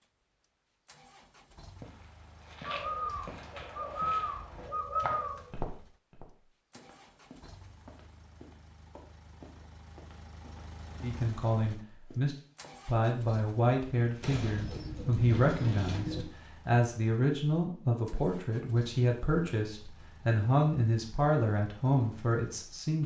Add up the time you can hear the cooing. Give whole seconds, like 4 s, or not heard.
5 s.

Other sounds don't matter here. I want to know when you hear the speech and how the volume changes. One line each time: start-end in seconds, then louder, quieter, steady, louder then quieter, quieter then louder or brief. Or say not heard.
11.0-23.0 steady.